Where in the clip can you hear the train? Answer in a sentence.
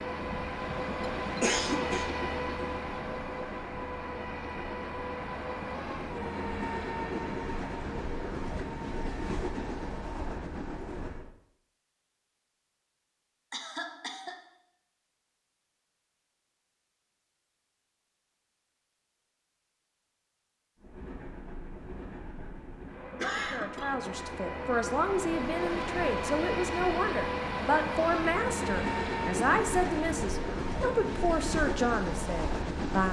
You can hear the train from 0.0 to 11.3 s and from 20.8 to 33.0 s.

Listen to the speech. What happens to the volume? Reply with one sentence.
The volume of the speech stays about the same.